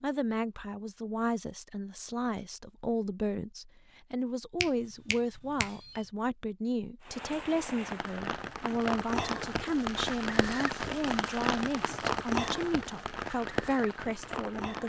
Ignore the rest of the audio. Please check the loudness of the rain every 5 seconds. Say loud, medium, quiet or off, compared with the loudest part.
off, loud, loud.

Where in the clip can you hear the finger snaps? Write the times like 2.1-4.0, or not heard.
4.6-6.0.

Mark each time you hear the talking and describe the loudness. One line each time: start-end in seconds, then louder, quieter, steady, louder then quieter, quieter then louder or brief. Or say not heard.
0.0-14.8 steady.